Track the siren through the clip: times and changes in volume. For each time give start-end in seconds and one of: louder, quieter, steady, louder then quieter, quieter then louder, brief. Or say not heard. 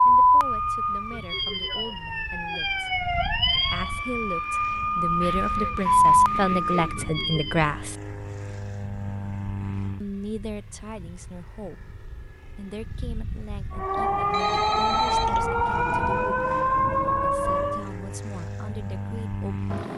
0.0-7.6 louder
13.7-17.9 steady.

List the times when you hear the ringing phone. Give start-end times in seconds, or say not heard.
14.3-15.5.